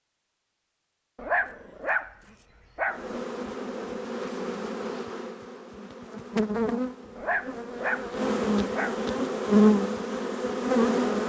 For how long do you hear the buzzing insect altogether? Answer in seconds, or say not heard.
8 s.